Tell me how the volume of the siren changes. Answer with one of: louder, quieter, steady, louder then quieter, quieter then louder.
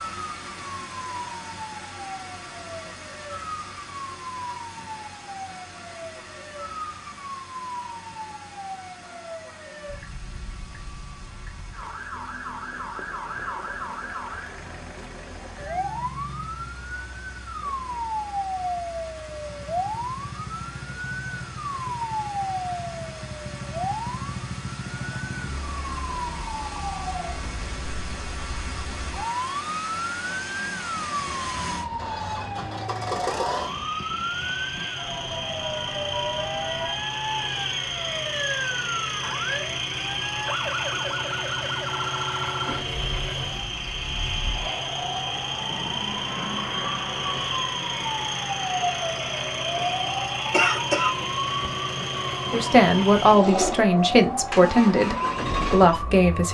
louder.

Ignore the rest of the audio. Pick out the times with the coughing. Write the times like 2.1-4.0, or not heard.
50.5-51.1.